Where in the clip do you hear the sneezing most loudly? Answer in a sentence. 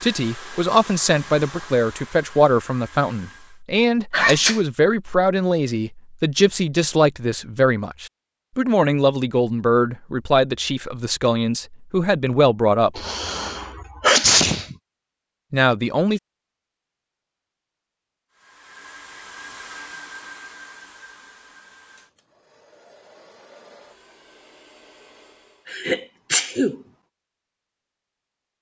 The loudest moment of the sneezing is at 14 seconds.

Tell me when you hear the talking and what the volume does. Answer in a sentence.
The talking can be heard from 0.0 to 13.1 s, at a steady volume; and briefly from 15.5 to 16.2 s.